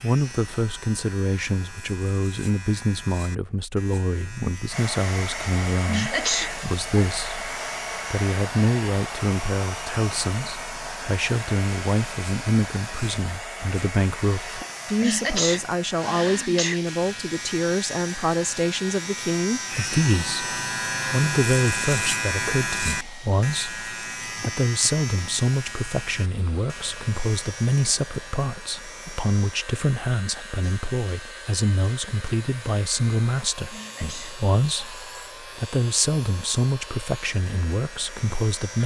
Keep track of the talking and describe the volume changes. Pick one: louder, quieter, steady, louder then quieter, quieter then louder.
steady.